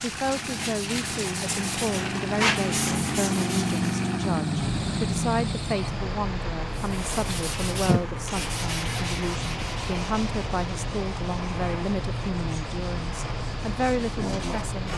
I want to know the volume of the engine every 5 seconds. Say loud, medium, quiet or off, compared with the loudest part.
loud, medium, quiet.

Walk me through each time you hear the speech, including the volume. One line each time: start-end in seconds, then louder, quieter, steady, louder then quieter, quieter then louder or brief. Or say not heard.
0.0-14.9 steady.